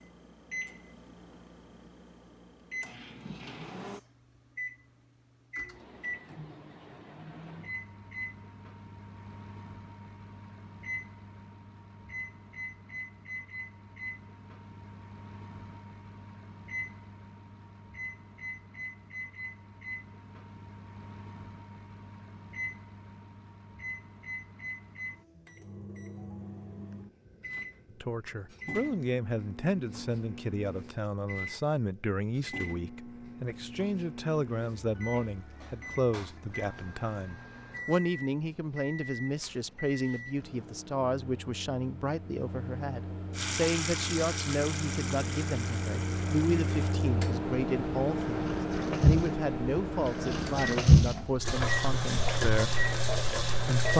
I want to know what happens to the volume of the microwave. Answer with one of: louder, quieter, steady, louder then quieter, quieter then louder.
louder.